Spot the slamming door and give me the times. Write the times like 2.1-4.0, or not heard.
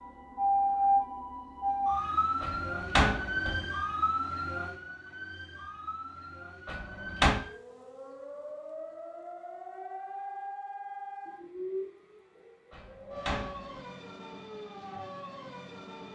2.4-3.6, 6.7-7.4, 12.7-13.8.